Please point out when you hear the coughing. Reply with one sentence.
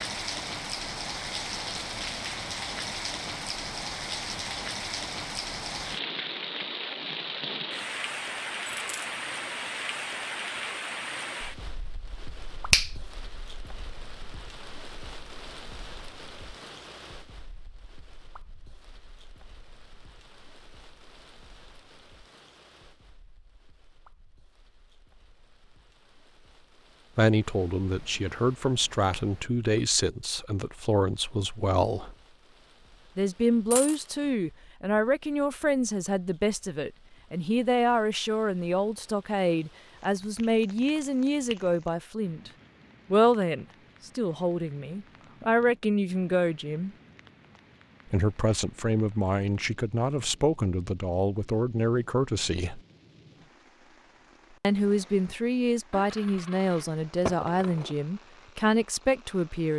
The coughing can't be heard in this clip.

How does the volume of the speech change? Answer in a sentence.
The volume of the speech stays about the same.